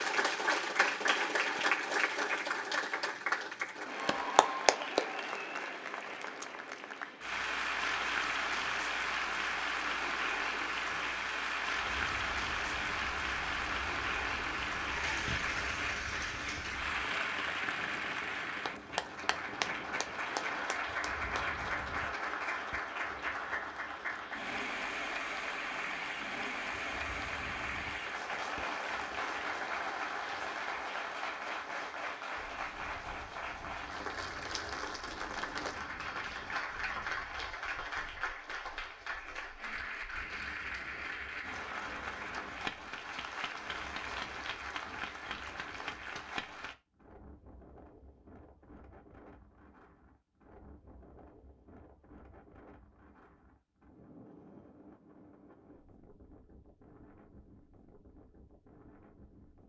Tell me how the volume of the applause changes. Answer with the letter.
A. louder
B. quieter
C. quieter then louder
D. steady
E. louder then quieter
B.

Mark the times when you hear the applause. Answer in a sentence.
You can hear the applause from 0.0 to 46.8 s.